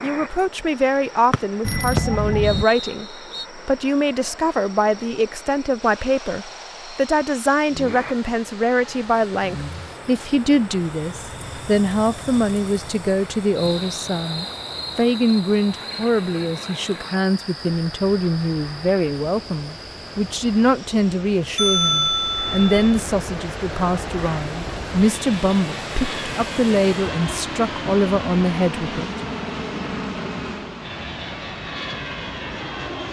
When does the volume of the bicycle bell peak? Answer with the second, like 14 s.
22 s.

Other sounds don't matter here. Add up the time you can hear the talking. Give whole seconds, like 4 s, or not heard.
29 s.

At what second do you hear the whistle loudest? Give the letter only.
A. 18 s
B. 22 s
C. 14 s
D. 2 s
D.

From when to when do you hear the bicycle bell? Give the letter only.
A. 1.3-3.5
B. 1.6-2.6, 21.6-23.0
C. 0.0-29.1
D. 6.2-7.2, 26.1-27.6
B.